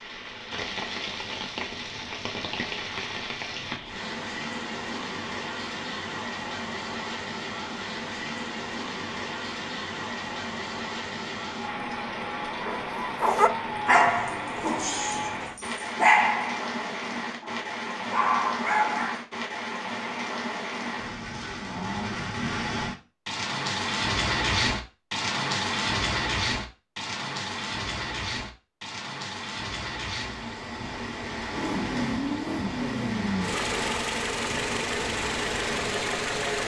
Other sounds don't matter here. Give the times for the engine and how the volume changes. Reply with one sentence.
The engine can be heard from 31.5 to 36.6 s, at a steady volume.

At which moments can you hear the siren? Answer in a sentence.
The siren can't be heard in this clip.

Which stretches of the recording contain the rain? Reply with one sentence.
You can hear the rain from 0.0 to 36.6 s.